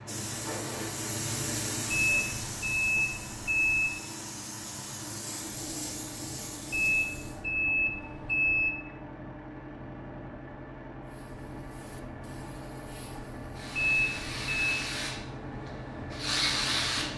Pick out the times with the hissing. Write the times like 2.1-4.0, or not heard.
0.0-7.5, 11.1-17.1.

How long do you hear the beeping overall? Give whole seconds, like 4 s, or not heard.
5 s.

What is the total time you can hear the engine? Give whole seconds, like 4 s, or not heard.
17 s.